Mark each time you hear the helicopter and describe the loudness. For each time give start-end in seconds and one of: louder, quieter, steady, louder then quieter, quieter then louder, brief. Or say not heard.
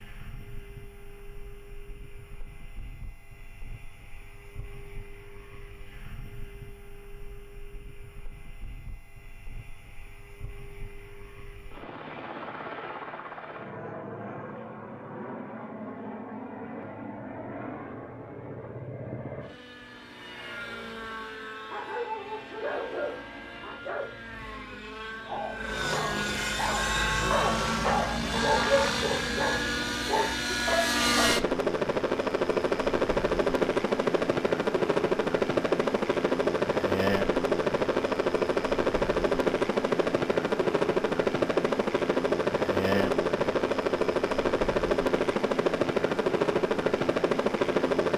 0.0-48.1 louder.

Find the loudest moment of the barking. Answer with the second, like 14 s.
29 s.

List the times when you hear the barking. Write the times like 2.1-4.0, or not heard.
21.7-31.4.